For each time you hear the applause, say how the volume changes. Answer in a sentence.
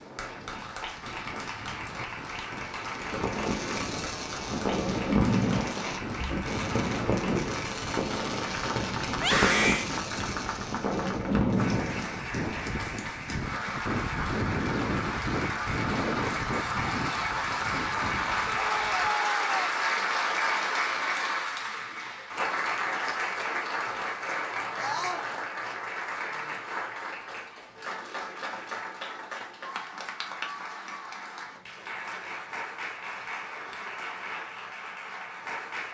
The applause can be heard from 0.0 to 35.9 s, getting louder then quieter.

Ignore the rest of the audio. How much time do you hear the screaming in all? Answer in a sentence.
You can hear the screaming for 2 seconds altogether.